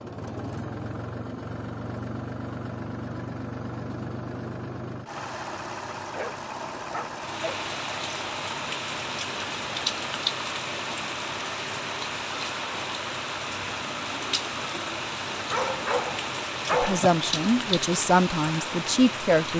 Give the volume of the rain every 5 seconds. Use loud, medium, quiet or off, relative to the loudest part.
off, loud, loud, loud.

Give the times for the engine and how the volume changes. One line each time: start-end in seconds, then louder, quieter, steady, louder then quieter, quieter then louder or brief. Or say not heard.
0.0-19.5 steady.